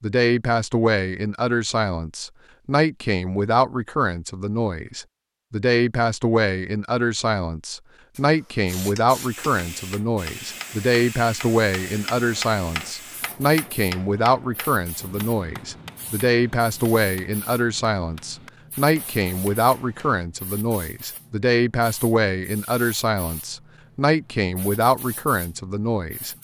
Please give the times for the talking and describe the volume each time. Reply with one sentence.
You can hear the talking from 0.0 to 26.3 s, at a steady volume.